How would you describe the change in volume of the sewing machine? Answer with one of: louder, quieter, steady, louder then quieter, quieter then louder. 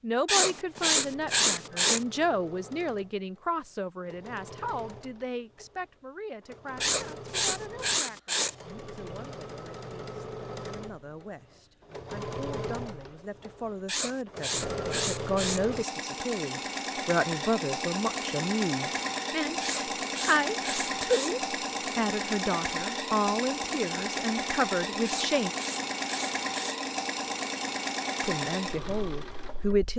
louder.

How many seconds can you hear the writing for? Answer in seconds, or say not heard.
9 s.